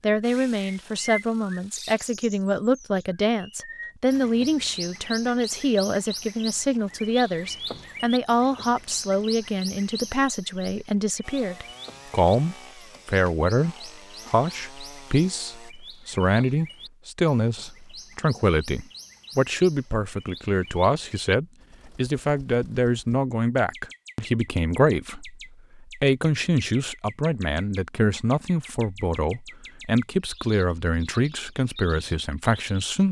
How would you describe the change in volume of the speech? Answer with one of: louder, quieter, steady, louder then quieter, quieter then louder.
steady.